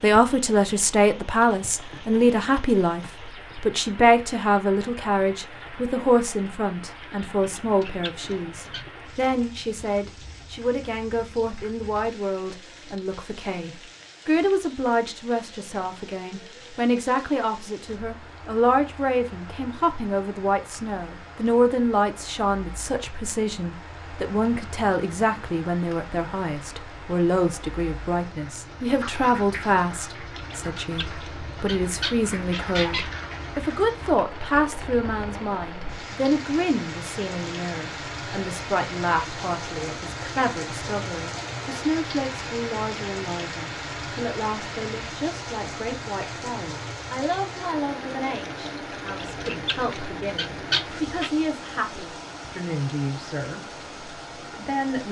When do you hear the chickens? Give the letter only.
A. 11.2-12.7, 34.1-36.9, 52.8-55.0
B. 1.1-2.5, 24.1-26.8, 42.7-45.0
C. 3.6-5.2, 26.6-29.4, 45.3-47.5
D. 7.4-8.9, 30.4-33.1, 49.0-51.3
D.